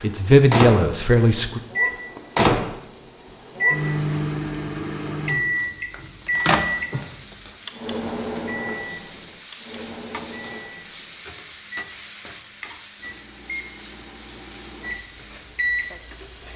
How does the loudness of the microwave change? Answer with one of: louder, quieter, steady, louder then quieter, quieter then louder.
quieter then louder.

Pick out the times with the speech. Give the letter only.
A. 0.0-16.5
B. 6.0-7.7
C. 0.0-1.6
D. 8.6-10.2
C.